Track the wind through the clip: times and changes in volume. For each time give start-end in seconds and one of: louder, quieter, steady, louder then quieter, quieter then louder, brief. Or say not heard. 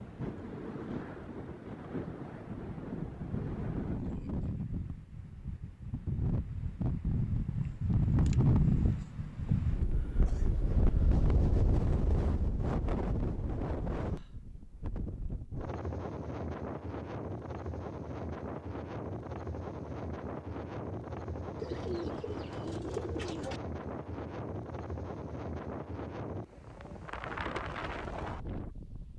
0.0-29.1 louder then quieter.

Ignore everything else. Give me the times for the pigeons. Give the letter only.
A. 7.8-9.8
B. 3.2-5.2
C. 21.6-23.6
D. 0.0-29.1
C.